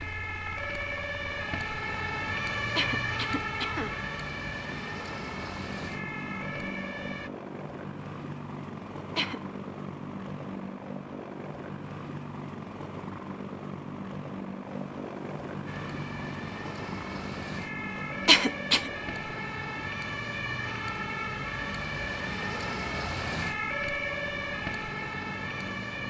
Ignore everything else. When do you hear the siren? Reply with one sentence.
You can hear the siren from 0.0 to 7.3 s and from 15.7 to 26.0 s.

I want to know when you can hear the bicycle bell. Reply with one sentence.
The bicycle bell can't be heard in this clip.